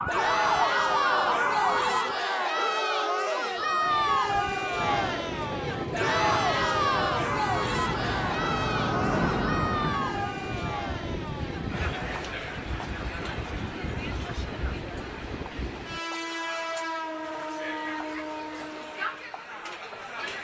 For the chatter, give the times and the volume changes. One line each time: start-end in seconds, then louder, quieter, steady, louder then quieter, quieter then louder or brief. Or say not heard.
0.1-20.4 quieter.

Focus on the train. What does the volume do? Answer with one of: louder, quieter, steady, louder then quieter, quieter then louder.
steady.